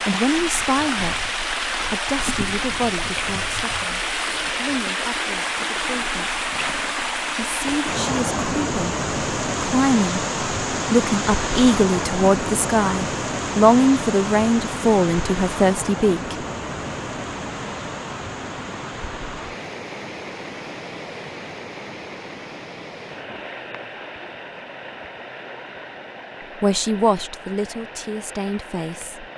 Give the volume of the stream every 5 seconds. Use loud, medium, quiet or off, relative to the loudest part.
loud, loud, loud, medium, medium, quiet.